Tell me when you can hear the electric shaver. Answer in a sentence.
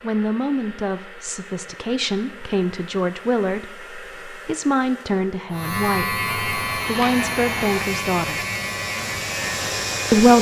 The electric shaver can be heard from 5.5 to 10.3 s.